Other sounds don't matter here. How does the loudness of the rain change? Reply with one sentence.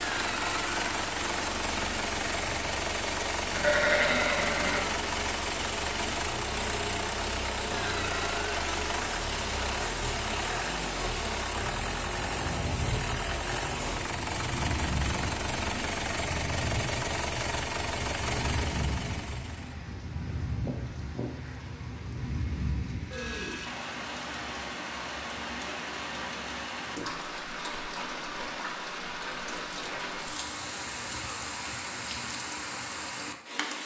The loudness of the rain stays about the same.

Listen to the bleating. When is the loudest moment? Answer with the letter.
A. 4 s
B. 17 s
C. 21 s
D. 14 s
A.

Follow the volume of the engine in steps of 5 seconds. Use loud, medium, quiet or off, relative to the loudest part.
loud, loud, loud, loud, off, off, off.